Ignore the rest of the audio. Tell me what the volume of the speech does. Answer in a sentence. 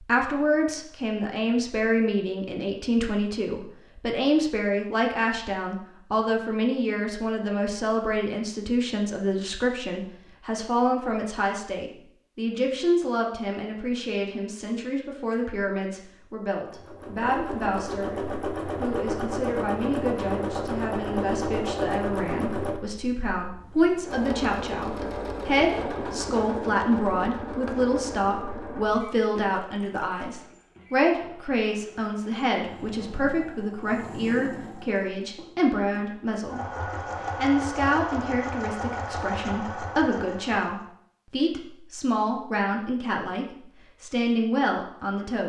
The loudness of the speech stays about the same.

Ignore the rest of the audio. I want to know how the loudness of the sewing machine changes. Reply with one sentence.
The volume of the sewing machine goes down, then up.